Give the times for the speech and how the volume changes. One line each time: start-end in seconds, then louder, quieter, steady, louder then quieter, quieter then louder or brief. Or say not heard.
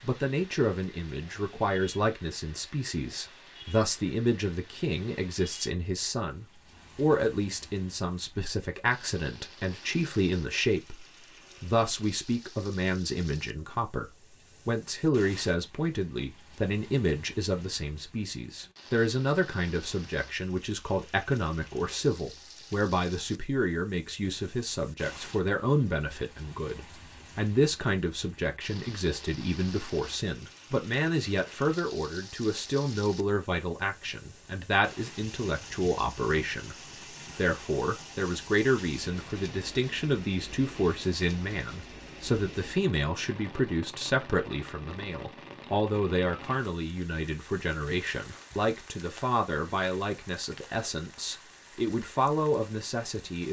0.0-36.8 steady
37.4-53.4 steady.